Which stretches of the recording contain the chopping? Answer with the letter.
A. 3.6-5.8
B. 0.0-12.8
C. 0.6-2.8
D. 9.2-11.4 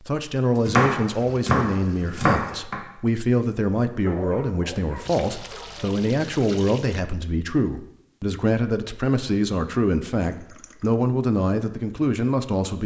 C.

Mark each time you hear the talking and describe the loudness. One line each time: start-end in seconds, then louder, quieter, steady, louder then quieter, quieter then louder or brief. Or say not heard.
0.0-12.8 steady.